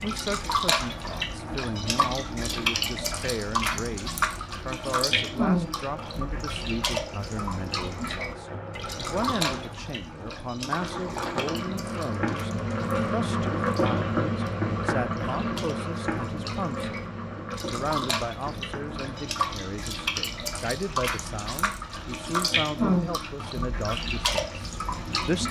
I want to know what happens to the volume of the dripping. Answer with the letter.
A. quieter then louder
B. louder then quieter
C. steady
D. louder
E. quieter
A.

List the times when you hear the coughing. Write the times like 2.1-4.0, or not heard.
not heard.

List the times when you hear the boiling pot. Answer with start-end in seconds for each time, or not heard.
0.0-25.4.